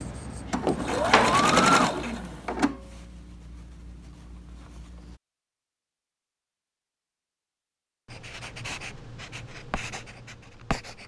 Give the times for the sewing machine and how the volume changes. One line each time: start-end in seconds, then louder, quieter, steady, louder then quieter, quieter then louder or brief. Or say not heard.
0.0-5.2 louder then quieter.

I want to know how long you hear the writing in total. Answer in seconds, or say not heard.
5 s.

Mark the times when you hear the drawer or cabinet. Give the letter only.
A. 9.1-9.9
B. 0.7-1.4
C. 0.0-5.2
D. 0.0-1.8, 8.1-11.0
B.